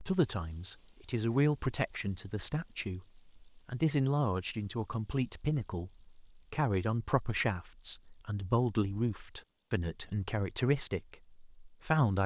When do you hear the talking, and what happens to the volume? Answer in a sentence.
You can hear the talking from 0.0 to 12.2 s, at a steady volume.